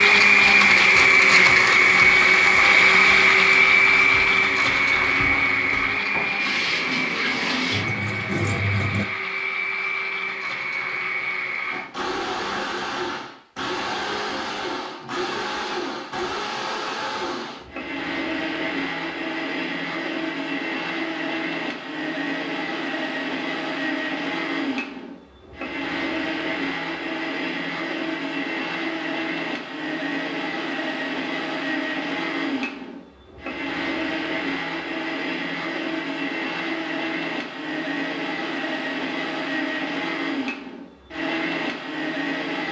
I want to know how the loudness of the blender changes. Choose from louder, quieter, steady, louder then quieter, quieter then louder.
quieter.